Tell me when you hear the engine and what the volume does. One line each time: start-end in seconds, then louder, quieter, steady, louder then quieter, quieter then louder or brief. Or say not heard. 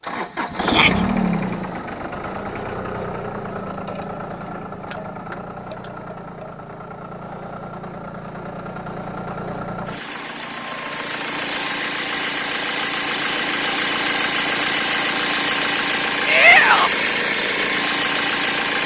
0.0-18.8 quieter then louder.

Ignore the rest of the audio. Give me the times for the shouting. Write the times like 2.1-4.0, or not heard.
0.6-1.1, 16.2-16.9.